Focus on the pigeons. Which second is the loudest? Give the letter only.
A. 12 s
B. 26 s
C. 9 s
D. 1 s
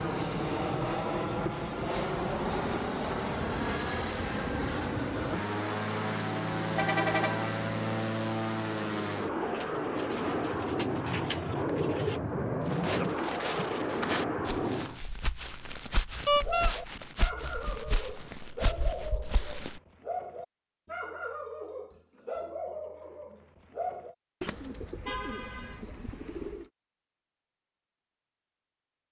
A.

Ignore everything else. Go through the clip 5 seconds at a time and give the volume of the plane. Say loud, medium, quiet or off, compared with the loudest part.
loud, loud, loud, off, off, off.